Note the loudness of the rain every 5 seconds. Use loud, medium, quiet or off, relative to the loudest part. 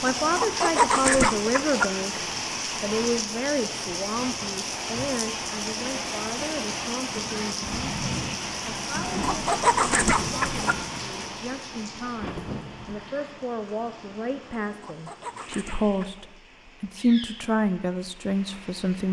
loud, loud, medium, quiet.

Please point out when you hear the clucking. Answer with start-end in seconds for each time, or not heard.
0.1-1.9, 8.9-10.8, 14.7-16.2.